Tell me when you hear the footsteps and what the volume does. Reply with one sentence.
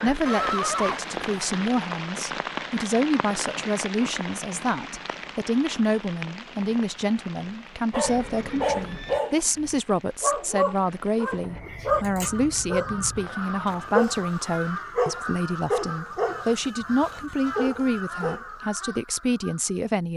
The footsteps can't be heard in this clip.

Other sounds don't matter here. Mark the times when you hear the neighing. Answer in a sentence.
The neighing can be heard from 0.2 to 1.5 s, from 8.0 to 9.2 s and from 14.3 to 15.2 s.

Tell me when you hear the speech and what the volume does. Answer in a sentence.
The speech can be heard from 0.0 to 20.1 s, at a steady volume.